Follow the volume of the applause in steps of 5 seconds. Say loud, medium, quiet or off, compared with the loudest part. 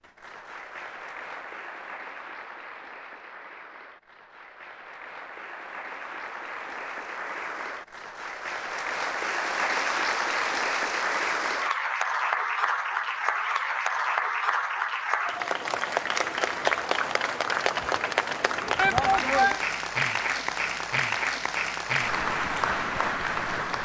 quiet, medium, loud, loud, loud.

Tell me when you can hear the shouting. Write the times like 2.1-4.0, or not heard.
18.8-19.6.